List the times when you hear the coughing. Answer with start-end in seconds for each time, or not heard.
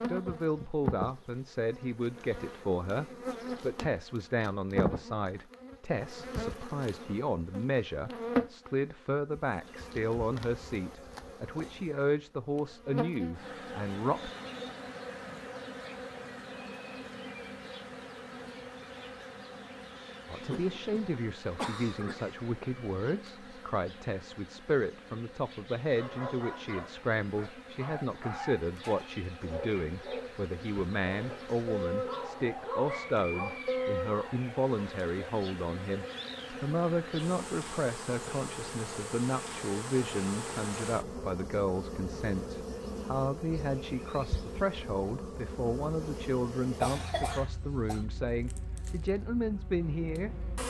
20.5-22.5, 46.8-48.0.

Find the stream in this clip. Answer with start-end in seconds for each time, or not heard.
not heard.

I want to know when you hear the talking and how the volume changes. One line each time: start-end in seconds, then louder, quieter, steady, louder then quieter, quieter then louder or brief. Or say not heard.
0.1-14.3 steady
20.2-50.4 steady.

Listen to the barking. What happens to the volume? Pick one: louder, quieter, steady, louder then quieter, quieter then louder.
louder.